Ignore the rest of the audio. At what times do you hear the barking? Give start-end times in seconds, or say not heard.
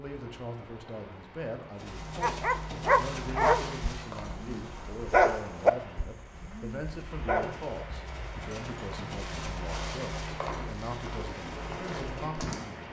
2.2-7.7.